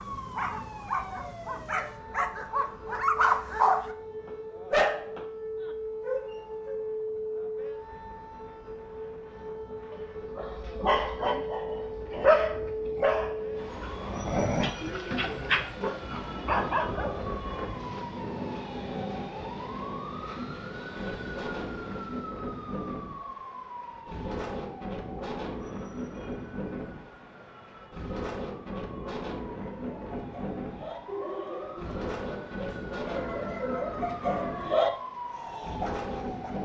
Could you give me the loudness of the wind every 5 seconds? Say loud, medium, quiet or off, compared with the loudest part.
quiet, quiet, medium, loud, loud, loud, loud, loud.